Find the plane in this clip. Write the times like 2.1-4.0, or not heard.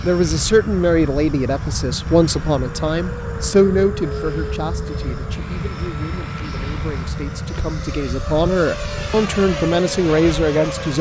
0.0-10.9.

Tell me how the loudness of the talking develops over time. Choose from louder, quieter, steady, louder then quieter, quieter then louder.
quieter then louder.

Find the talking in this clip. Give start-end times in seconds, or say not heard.
0.0-10.9.